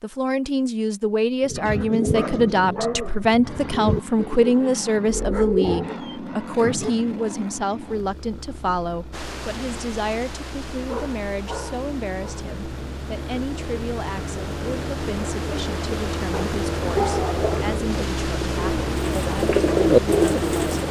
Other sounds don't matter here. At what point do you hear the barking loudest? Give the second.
17 s.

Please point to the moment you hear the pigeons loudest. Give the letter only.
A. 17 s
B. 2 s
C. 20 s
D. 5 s
C.